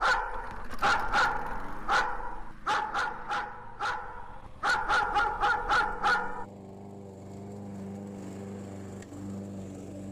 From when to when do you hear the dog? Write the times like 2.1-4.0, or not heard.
0.0-6.5.